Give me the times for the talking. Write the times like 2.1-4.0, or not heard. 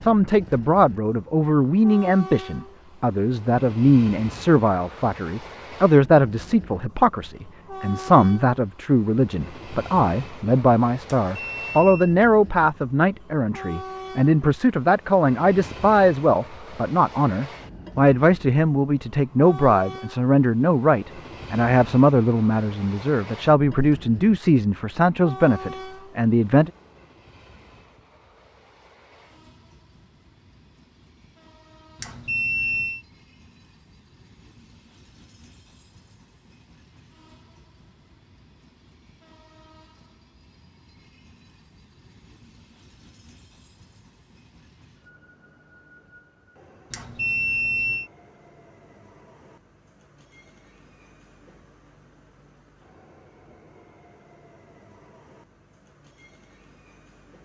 0.0-26.7.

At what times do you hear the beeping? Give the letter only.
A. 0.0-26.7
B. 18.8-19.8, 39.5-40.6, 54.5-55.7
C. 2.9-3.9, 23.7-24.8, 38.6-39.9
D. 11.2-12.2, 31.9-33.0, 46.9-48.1
D.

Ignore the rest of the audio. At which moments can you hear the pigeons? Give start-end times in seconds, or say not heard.
not heard.